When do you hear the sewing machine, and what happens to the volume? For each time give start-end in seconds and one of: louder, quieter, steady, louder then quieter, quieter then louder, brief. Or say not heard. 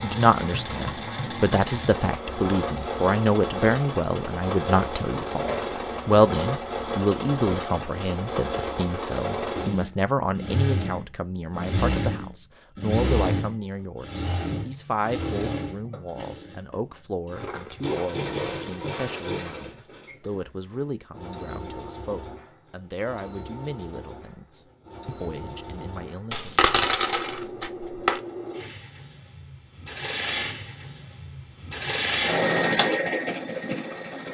0.0-34.2 quieter then louder.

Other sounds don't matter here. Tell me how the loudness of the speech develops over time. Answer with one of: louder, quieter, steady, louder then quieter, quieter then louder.
quieter.